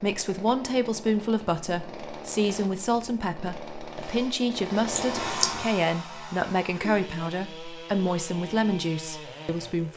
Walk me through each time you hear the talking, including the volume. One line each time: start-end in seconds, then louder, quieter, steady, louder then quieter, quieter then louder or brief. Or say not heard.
0.0-9.9 steady.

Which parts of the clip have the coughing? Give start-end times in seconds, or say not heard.
4.9-5.8.